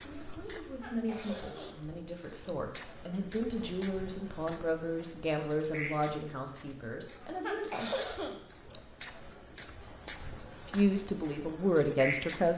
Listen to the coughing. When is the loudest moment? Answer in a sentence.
The volume of the coughing peaks at 8 seconds.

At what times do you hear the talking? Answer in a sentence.
The talking can be heard from 0.0 to 7.9 s and from 10.7 to 12.5 s.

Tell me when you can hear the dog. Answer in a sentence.
You can't hear the dog here.